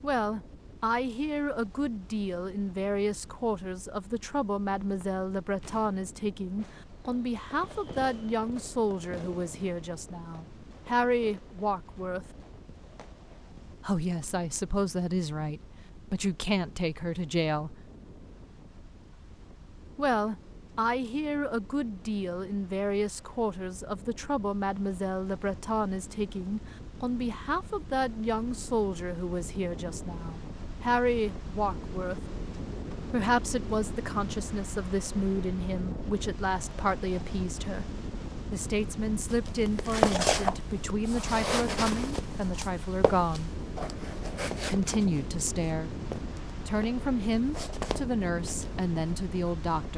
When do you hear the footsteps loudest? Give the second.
40 s.